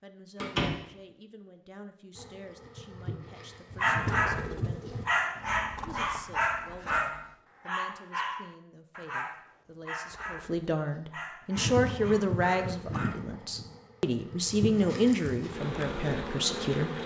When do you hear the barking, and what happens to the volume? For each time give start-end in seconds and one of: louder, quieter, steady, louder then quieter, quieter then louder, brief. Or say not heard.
3.8-13.2 quieter.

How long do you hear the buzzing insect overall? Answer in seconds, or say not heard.
8 s.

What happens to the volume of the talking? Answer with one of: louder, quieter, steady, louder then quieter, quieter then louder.
louder.